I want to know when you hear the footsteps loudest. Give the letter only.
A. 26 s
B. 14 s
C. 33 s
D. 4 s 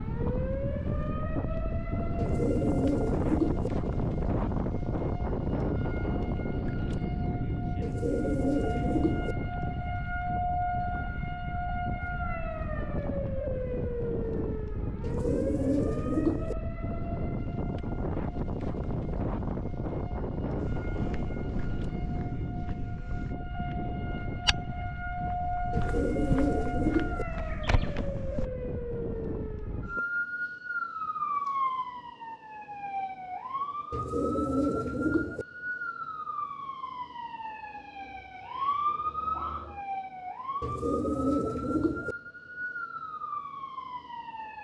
A.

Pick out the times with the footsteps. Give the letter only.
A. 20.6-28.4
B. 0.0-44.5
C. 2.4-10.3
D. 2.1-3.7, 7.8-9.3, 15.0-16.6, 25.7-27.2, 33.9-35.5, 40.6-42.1
A.